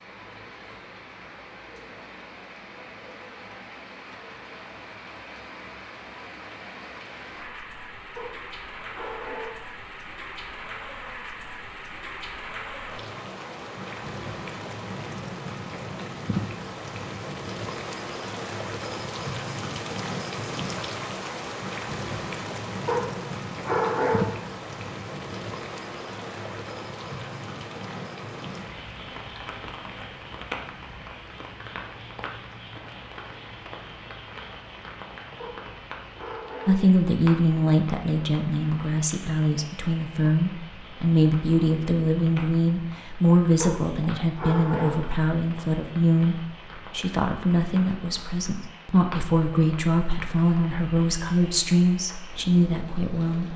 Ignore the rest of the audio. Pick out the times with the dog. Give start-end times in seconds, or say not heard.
8.2-9.8, 22.9-24.5, 35.4-36.9, 43.6-45.2.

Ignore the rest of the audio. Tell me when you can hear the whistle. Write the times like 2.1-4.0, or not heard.
not heard.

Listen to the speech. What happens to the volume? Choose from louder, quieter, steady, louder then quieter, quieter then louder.
steady.